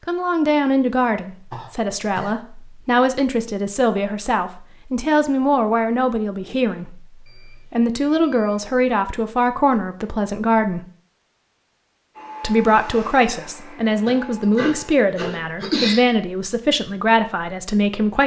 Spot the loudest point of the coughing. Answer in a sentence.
The loudest moment of the coughing is at 16 seconds.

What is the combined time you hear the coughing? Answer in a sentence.
The coughing can be heard for 3 seconds in total.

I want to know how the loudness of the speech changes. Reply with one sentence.
The loudness of the speech stays about the same.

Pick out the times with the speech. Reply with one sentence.
You can hear the speech from 0.1 to 10.8 s and from 12.4 to 18.2 s.